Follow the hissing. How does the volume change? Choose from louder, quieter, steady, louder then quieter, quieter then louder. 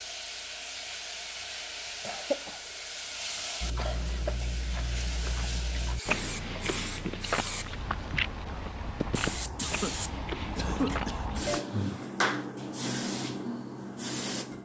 louder.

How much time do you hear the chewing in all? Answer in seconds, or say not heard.
8 s.